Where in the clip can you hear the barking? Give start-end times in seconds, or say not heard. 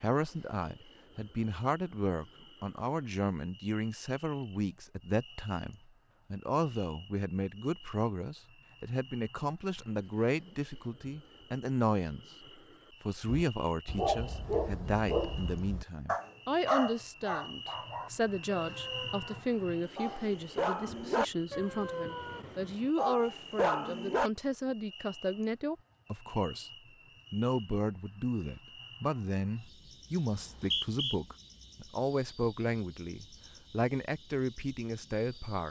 13.2-24.3.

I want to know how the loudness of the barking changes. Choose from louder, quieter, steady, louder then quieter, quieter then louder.
quieter then louder.